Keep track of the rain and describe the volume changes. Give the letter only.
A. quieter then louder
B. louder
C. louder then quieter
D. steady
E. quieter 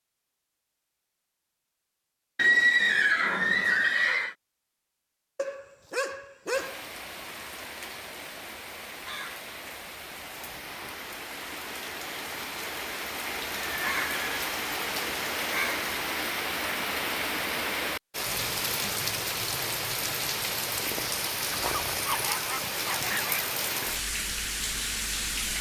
B.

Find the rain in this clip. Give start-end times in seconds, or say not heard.
6.5-25.5.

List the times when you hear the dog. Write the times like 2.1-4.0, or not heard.
5.3-6.8, 21.5-23.5.